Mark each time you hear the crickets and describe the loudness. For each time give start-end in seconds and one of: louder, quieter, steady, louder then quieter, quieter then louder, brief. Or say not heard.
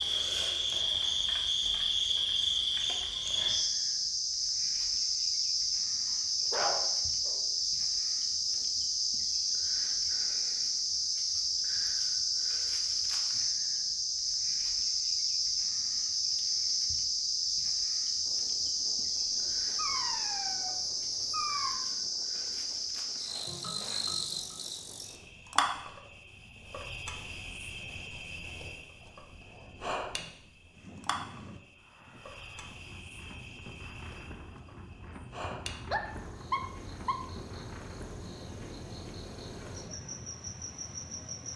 0.0-41.5 quieter.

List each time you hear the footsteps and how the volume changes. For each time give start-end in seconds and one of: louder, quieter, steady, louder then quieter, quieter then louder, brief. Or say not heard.
not heard.